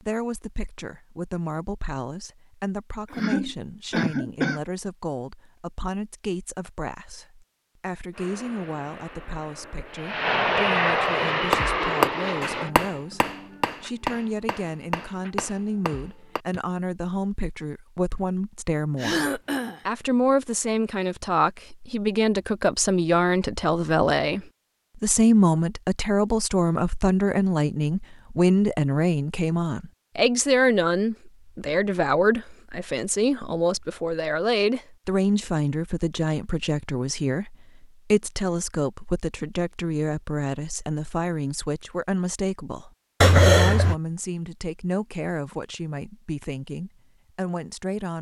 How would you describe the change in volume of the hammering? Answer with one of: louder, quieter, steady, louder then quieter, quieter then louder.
quieter.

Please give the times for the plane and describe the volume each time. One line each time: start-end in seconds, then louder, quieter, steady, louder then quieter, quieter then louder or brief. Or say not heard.
8.1-12.7 louder.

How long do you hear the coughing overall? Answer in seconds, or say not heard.
3 s.